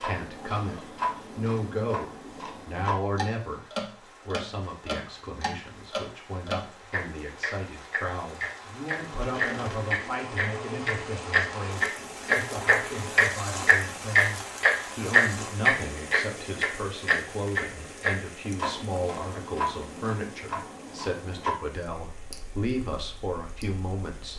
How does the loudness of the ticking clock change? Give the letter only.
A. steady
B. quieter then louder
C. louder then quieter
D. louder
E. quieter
C.